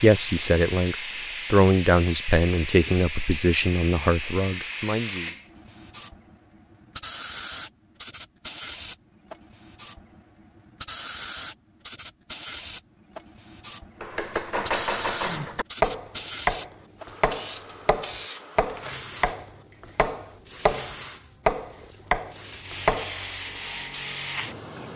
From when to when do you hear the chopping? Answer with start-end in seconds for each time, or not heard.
14.0-23.2.